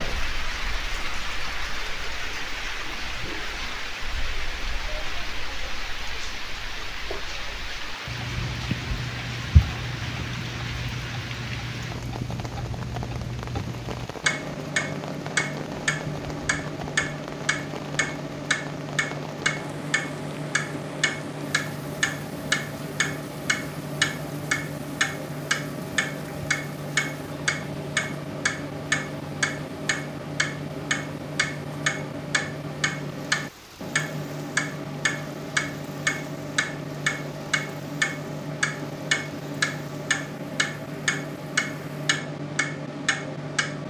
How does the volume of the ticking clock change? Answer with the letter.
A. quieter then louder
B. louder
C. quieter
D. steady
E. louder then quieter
B.